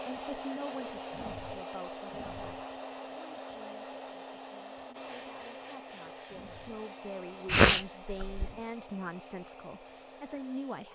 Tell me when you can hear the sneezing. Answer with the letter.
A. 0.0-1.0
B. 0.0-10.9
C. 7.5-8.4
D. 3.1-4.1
C.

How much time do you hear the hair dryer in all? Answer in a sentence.
You can hear the hair dryer for 11 seconds altogether.